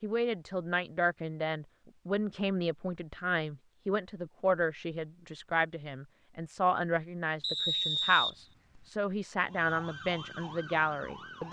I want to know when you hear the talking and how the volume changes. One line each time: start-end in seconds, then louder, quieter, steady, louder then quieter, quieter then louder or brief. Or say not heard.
0.0-11.4 steady.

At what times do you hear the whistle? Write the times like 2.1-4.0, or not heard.
7.4-8.8.